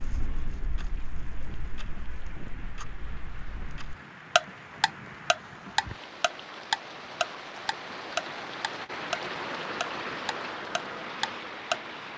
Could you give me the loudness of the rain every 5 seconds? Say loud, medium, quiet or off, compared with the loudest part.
medium, loud, loud.